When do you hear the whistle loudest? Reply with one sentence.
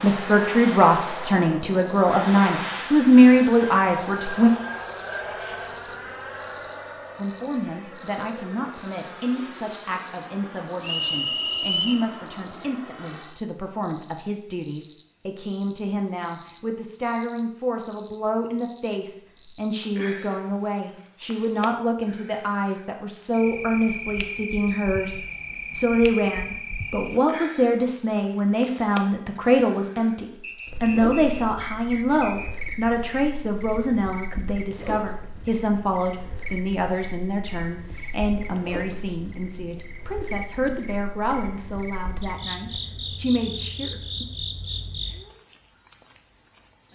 The volume of the whistle peaks at 12 seconds.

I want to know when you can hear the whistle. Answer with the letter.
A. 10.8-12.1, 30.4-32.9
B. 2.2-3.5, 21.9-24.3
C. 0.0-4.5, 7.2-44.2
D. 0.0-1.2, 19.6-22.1
A.